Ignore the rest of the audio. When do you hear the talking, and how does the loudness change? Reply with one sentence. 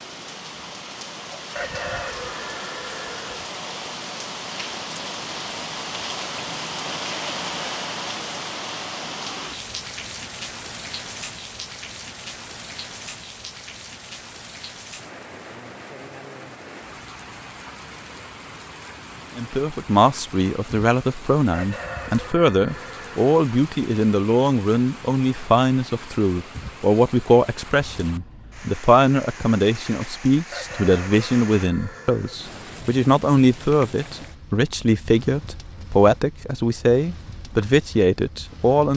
The talking can be heard from 19.4 to 38.9 s, at a steady volume.